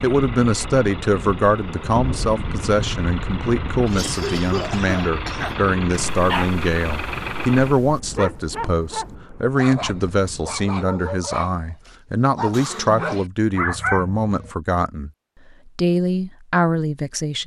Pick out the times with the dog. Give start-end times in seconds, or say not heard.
6.0-14.5.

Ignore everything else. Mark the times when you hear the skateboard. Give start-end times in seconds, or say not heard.
not heard.